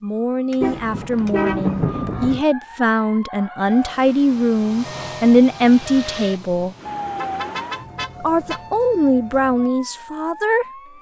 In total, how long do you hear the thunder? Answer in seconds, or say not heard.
2 s.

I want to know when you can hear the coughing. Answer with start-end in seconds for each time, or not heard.
not heard.